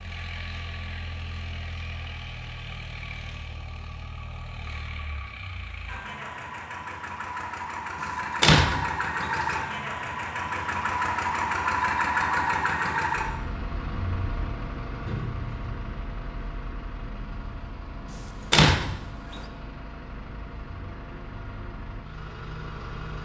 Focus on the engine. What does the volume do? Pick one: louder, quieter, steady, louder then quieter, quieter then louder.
louder then quieter.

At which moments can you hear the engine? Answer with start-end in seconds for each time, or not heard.
0.0-23.2.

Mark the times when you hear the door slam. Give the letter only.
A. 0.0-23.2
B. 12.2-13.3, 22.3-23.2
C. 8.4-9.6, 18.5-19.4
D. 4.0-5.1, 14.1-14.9
C.